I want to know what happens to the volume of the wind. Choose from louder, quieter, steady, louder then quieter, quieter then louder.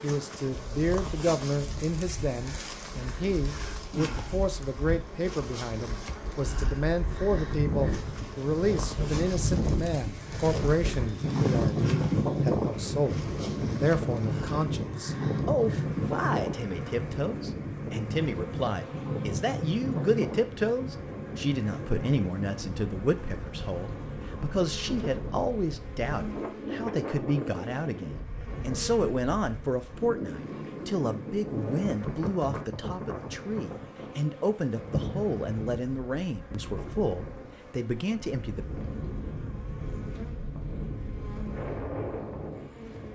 louder then quieter.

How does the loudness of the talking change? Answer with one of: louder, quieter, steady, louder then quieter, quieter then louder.
steady.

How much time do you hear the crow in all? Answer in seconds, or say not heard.
not heard.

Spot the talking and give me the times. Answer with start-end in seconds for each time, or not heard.
0.0-38.6.